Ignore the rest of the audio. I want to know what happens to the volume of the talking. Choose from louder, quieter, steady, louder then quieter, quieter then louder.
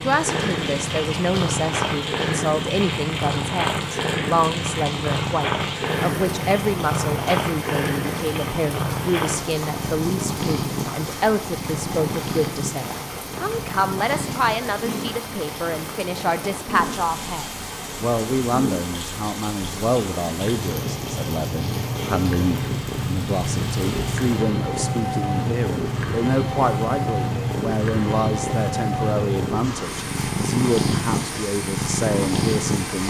steady.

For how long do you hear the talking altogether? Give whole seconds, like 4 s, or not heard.
33 s.